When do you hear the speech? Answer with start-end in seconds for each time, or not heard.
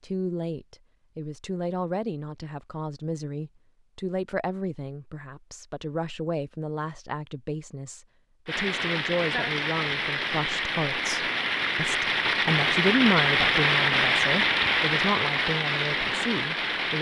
0.0-16.9.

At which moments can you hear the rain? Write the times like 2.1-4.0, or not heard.
8.4-16.9.